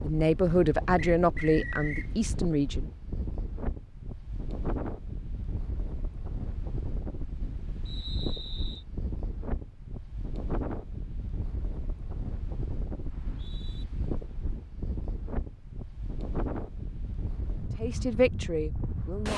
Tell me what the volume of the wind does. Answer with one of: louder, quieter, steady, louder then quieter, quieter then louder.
steady.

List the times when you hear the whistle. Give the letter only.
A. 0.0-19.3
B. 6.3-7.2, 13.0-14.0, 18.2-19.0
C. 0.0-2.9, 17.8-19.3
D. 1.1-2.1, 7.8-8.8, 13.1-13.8
D.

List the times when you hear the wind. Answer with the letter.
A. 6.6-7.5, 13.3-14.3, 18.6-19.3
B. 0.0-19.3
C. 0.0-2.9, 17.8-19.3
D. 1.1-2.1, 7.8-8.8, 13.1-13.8
B.